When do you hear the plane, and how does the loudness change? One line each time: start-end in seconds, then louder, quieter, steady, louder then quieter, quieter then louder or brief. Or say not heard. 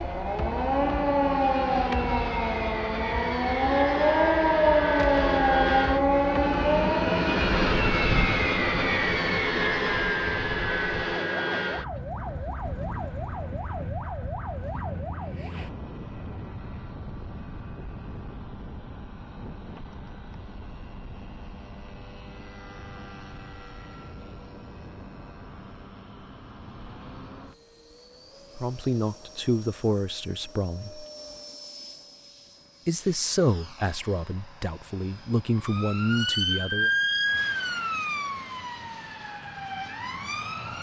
0.0-40.7 quieter.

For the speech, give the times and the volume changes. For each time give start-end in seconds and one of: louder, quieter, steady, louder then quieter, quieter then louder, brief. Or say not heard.
28.6-31.1 brief
32.9-36.9 quieter then louder.